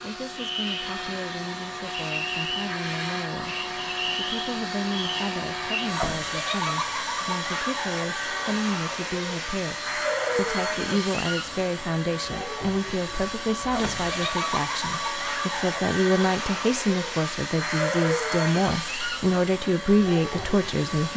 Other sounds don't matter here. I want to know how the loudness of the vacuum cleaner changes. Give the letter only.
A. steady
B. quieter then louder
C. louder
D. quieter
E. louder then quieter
A.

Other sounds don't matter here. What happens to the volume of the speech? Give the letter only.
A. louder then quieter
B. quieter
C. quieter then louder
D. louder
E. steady
D.